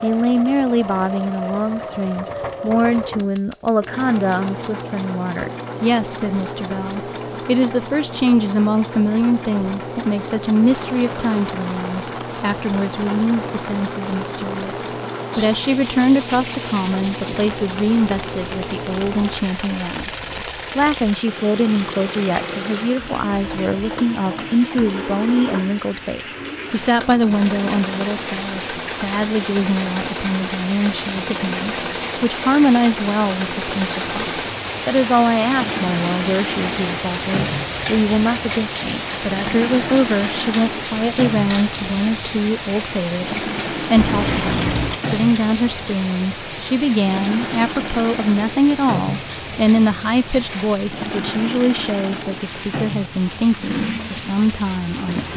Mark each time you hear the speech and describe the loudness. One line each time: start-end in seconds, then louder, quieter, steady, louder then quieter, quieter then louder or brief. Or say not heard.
0.0-55.3 steady.